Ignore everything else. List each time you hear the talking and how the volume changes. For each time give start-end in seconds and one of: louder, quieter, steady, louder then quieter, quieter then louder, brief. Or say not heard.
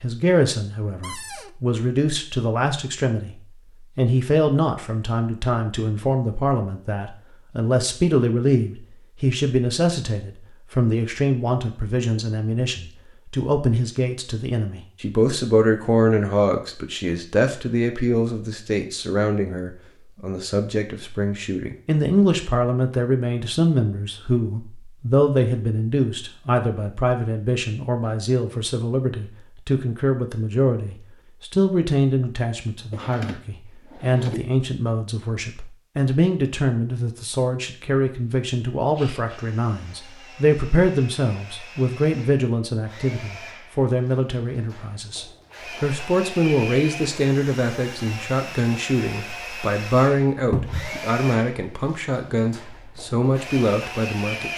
0.0-54.5 steady.